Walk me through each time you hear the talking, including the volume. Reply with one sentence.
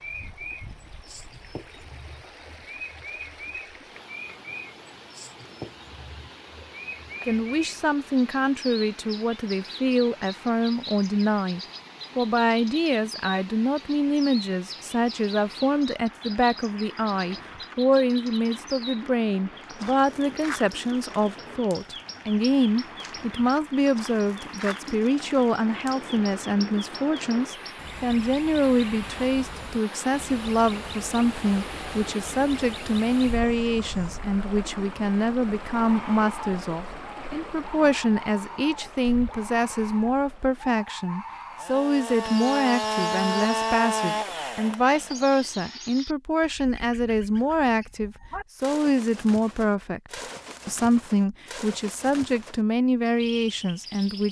The talking can be heard from 7.2 to 54.2 s, at a steady volume.